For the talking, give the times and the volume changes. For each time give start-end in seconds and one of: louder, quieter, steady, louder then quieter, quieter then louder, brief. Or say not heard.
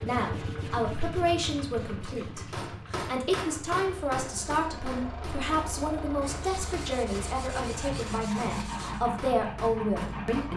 0.0-10.5 steady.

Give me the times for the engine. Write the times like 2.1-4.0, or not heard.
0.0-10.5.